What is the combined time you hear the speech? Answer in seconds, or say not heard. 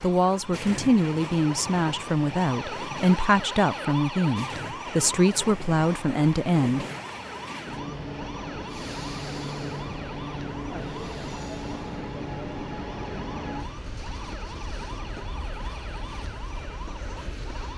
7 s.